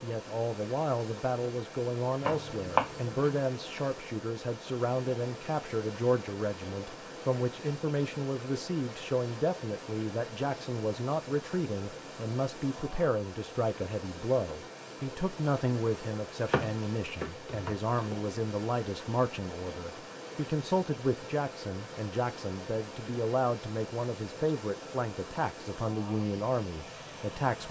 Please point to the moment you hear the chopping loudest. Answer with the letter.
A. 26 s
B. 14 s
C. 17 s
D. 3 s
D.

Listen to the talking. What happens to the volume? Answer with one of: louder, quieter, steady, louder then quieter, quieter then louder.
steady.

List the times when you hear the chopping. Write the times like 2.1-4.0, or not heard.
2.2-3.4, 16.4-18.1.